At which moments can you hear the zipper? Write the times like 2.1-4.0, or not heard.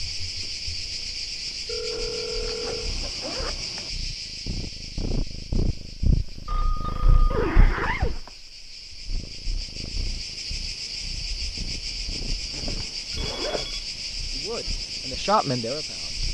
1.9-3.9, 7.3-8.2, 12.5-13.8.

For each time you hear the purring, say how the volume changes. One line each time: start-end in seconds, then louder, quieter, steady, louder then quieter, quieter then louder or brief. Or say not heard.
0.0-16.2 louder then quieter.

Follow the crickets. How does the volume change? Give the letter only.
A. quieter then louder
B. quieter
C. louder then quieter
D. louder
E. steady
A.